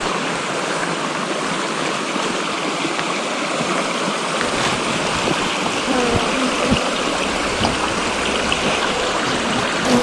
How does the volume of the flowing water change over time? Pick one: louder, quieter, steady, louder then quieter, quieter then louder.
steady.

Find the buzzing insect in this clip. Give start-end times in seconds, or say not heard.
4.3-9.9.